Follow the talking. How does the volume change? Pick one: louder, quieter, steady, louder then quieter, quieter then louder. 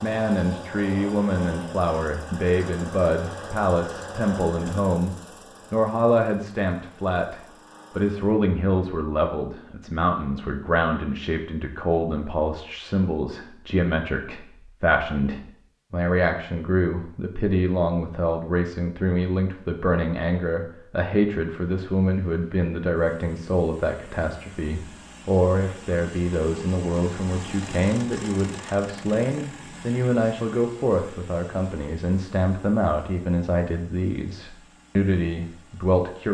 steady.